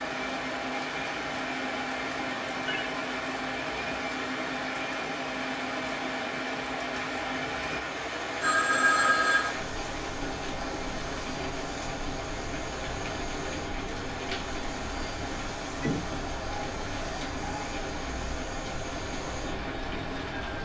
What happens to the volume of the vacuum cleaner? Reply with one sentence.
The volume of the vacuum cleaner stays about the same.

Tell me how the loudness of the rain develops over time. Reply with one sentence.
The loudness of the rain stays about the same.